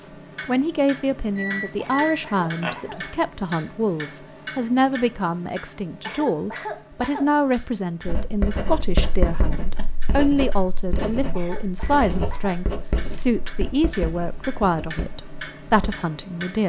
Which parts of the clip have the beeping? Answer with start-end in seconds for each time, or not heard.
1.4-2.7.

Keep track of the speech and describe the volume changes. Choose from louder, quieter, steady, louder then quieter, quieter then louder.
steady.